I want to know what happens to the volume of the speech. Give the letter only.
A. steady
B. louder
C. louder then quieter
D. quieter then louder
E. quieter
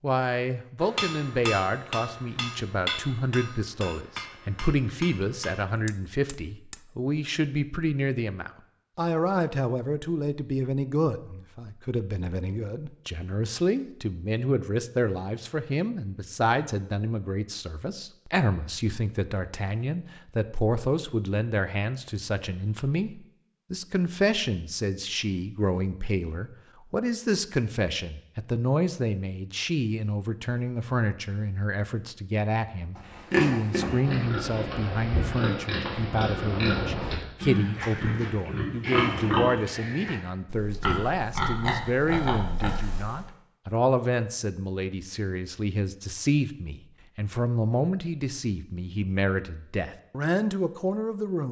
A.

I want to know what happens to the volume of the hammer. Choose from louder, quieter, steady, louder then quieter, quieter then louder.
quieter.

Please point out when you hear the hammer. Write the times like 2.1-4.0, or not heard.
0.8-6.8.